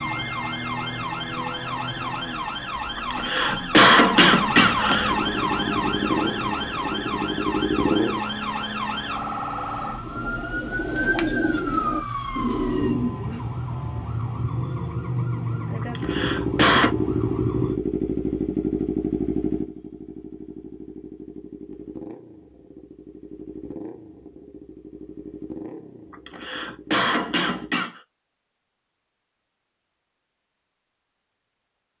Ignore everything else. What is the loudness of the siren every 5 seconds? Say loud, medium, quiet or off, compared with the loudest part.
loud, loud, loud, loud, off, off, off.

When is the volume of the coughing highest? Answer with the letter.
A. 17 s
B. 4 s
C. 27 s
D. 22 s
B.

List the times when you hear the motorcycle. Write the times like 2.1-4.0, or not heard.
5.0-8.2, 16.0-27.8.